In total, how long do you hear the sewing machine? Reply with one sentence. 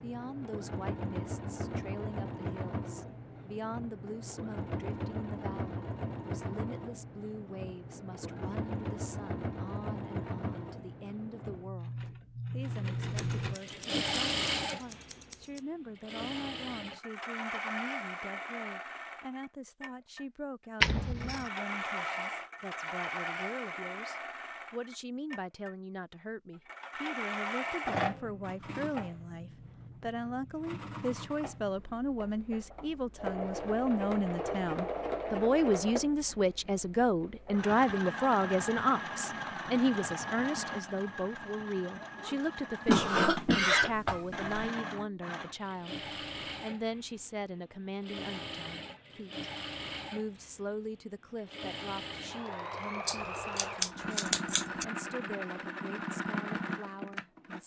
The sewing machine can be heard for 57 seconds in total.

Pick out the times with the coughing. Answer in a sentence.
You can hear the coughing from 42.9 to 44.5 s.